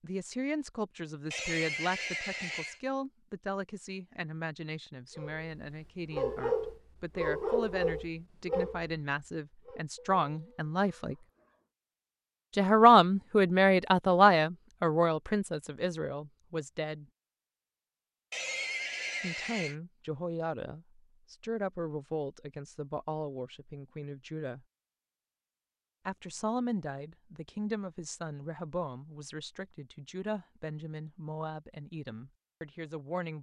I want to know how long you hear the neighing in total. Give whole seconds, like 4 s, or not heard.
3 s.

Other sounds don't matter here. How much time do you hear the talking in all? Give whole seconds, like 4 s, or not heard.
28 s.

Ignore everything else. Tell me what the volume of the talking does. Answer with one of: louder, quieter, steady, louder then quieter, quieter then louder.
louder then quieter.